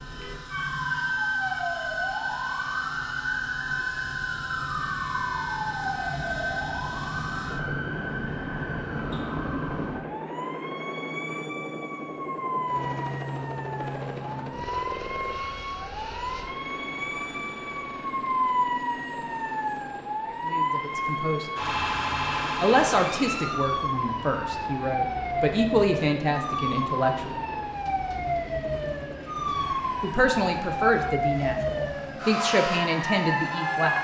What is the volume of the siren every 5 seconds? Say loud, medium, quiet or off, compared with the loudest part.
loud, loud, medium, loud, loud, loud, loud.